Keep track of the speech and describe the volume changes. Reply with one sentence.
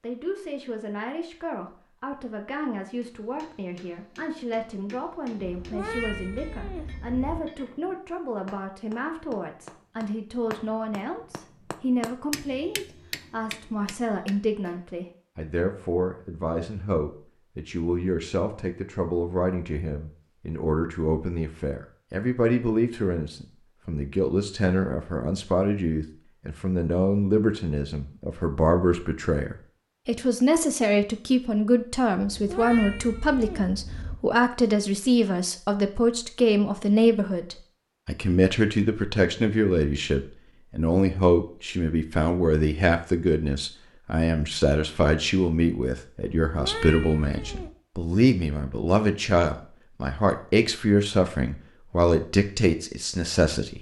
The volume of the speech goes up.